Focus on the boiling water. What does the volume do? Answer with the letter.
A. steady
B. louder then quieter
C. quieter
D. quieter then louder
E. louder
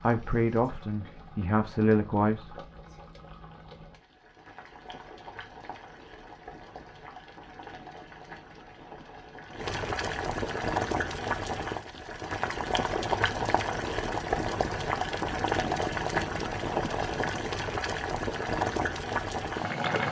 E.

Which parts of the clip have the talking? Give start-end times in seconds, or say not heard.
0.0-2.5.